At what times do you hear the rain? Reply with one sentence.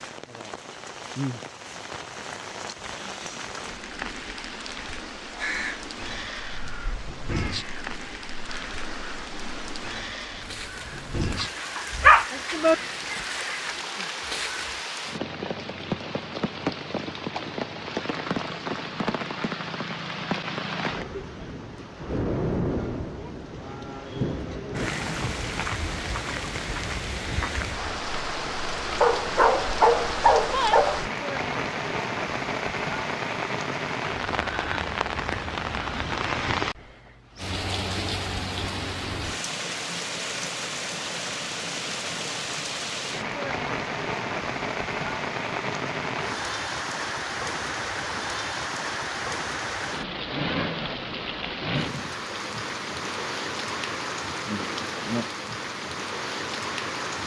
The rain can be heard from 0.0 to 57.2 s.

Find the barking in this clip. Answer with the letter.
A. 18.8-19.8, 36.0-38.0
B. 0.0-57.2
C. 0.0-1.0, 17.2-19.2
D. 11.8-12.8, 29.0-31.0
D.